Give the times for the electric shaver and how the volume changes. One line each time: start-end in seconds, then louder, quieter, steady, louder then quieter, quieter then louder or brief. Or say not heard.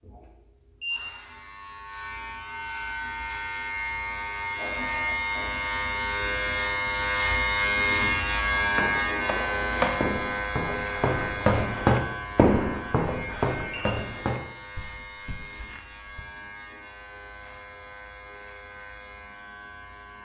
0.0-20.2 louder then quieter.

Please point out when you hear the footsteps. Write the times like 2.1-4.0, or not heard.
8.7-16.2.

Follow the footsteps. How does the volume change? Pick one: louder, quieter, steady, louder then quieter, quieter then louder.
louder then quieter.